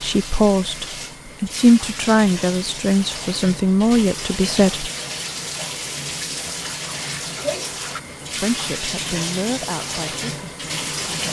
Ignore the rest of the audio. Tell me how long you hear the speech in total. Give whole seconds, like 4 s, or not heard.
8 s.